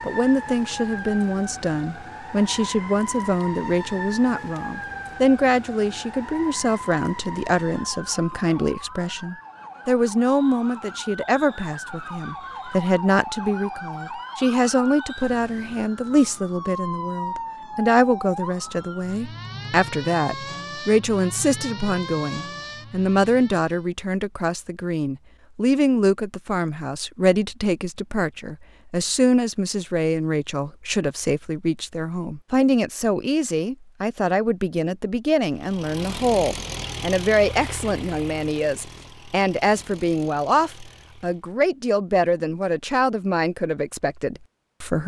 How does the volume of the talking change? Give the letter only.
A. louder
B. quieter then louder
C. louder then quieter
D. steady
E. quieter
D.